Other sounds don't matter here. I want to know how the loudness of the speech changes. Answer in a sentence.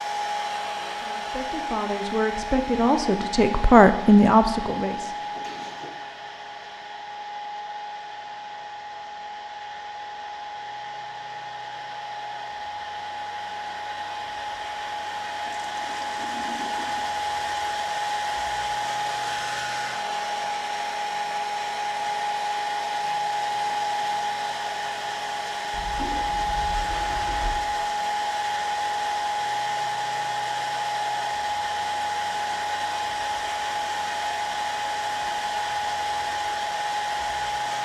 The loudness of the speech goes up.